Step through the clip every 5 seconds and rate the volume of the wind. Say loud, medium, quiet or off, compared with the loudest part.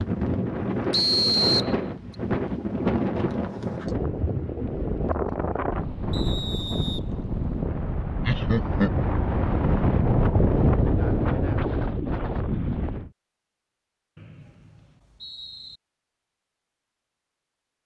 loud, loud, loud, off.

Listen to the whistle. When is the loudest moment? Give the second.
1 s.